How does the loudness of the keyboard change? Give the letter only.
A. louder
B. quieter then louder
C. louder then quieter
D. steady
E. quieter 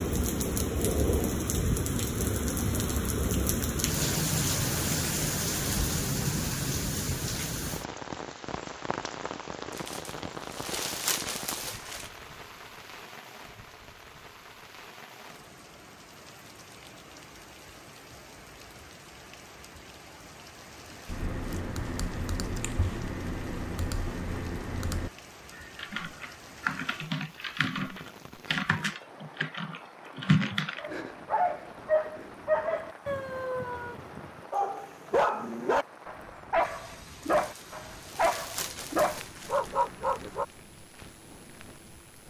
A.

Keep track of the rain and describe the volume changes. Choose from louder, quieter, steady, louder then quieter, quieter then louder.
quieter.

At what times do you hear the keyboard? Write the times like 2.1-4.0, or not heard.
21.1-30.9.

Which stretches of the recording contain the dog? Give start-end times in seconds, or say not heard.
30.8-40.5.